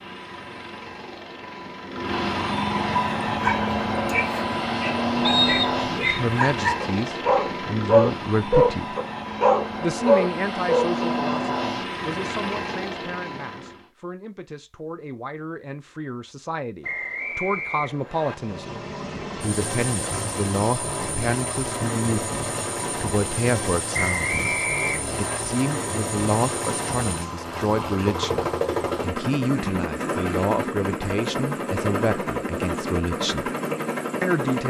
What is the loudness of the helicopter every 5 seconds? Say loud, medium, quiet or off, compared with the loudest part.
loud, loud, loud, medium, loud, loud, loud.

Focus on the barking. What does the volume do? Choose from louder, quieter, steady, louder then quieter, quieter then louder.
louder.